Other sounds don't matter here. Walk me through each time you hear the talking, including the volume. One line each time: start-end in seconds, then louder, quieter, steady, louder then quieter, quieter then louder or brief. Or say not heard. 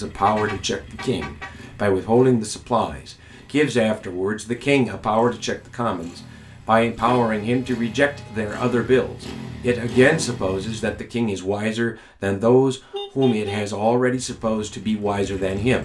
0.0-15.8 steady.